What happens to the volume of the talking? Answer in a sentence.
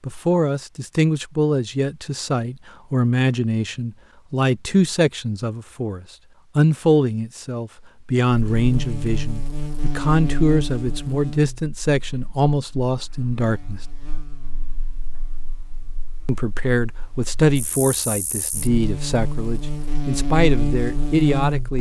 The loudness of the talking stays about the same.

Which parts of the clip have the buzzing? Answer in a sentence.
The buzzing can be heard from 8.3 to 21.7 s.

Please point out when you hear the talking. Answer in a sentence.
You can hear the talking from 0.0 to 13.8 s and from 16.2 to 21.7 s.